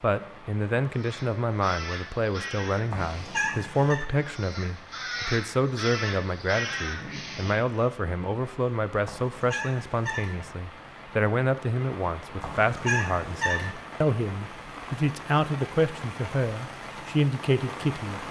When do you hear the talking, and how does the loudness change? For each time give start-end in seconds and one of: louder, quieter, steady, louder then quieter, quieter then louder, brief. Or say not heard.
0.0-18.2 steady.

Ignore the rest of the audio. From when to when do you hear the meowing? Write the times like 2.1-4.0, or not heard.
2.9-4.0, 9.1-10.3, 12.4-13.7.